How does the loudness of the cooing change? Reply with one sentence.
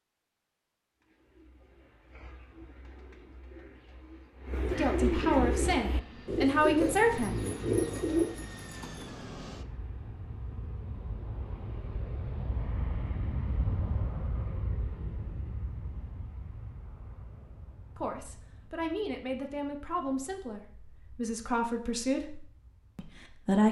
The loudness of the cooing goes up.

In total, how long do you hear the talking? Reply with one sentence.
The talking can be heard for 8 seconds in total.